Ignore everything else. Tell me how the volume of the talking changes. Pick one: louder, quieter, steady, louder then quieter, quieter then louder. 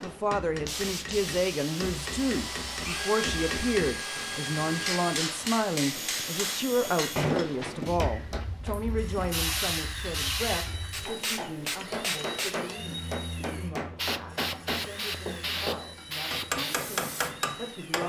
quieter.